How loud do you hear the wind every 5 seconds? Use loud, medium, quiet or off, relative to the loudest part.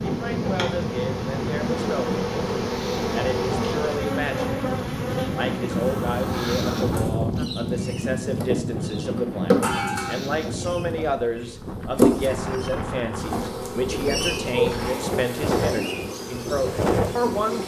loud, loud, medium, loud.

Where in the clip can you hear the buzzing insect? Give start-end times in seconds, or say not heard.
0.0-17.6.